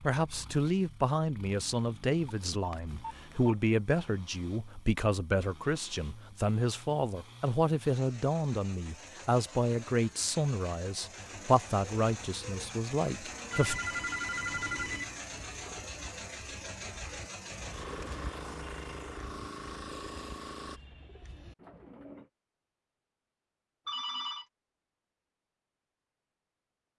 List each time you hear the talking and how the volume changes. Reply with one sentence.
The talking can be heard from 0.0 to 13.8 s, at a steady volume.